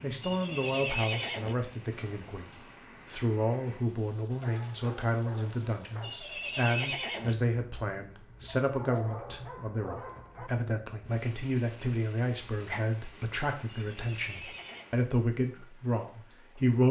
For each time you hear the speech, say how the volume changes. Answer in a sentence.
The speech can be heard from 0.0 to 16.8 s, at a steady volume.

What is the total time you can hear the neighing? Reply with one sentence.
The neighing can be heard for 4 seconds in total.